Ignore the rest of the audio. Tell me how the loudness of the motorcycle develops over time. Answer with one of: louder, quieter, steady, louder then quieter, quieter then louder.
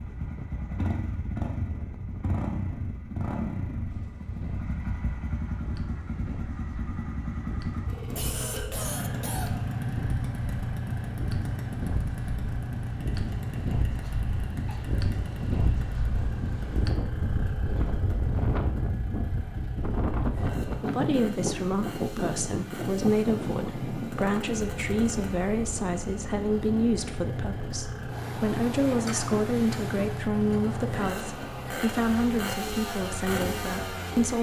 quieter then louder.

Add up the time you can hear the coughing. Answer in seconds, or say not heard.
4 s.